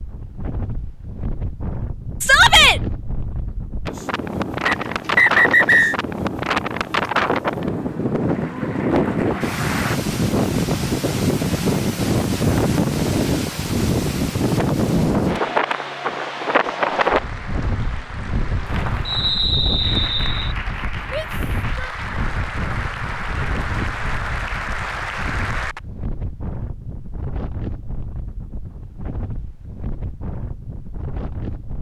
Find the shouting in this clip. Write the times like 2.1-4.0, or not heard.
2.2-2.8, 21.1-21.9.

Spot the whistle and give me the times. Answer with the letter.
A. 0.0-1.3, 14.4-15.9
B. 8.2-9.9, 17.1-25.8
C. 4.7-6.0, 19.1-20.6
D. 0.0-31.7
C.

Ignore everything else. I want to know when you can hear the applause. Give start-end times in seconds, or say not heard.
8.2-9.9, 17.1-25.8.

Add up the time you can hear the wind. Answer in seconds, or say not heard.
32 s.